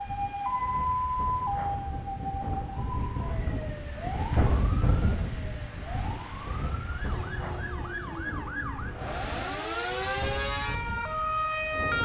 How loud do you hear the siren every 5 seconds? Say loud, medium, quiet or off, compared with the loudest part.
loud, medium, loud.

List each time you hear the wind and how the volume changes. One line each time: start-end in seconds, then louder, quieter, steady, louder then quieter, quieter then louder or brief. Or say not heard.
0.0-12.0 louder then quieter.